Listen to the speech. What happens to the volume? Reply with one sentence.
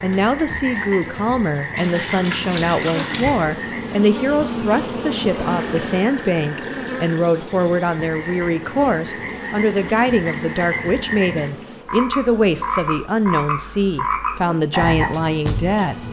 The volume of the speech stays about the same.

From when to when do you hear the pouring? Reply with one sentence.
The pouring can be heard from 1.8 to 3.5 s.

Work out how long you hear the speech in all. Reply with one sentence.
You can hear the speech for 16 seconds altogether.